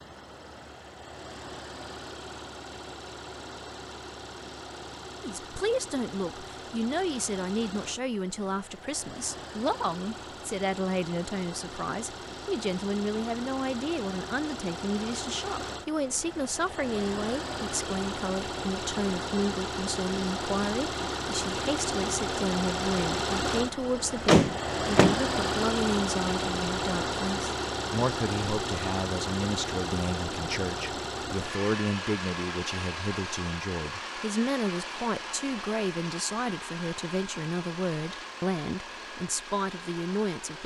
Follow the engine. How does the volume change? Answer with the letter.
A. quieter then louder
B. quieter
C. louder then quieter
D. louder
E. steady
C.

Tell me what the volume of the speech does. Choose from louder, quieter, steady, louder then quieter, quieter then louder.
steady.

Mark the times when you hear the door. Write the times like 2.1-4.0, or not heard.
24.2-25.2.